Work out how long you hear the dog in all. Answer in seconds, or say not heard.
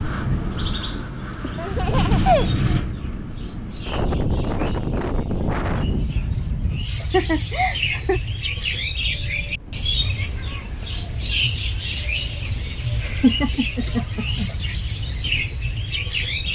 not heard.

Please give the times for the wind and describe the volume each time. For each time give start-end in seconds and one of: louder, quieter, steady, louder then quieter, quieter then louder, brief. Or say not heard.
0.0-16.5 quieter.